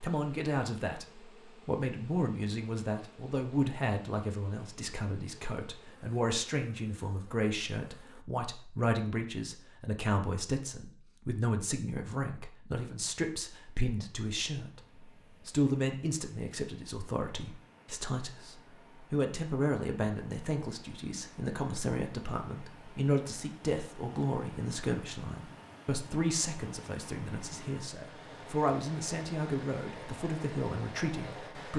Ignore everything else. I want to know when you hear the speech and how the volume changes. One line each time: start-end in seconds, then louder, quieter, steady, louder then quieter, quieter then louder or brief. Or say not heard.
0.0-31.7 steady.